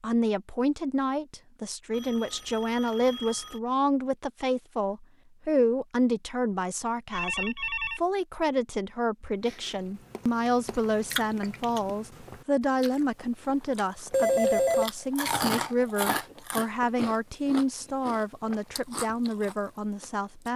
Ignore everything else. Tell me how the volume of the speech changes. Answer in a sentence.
The volume of the speech stays about the same.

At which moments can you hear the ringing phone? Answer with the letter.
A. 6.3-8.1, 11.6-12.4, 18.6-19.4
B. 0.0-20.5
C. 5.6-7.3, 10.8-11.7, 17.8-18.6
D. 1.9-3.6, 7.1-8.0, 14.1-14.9
D.